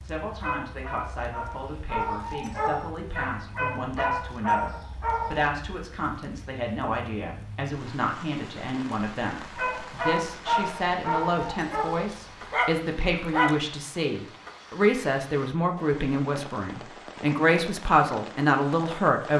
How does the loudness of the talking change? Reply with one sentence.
The loudness of the talking goes up.